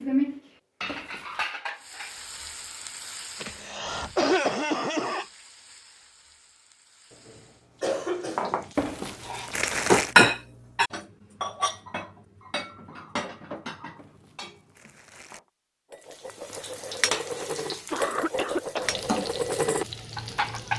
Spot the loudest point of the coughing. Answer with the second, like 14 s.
4 s.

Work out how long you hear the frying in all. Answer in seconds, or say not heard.
13 s.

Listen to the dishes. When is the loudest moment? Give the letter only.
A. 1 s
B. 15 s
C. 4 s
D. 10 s
D.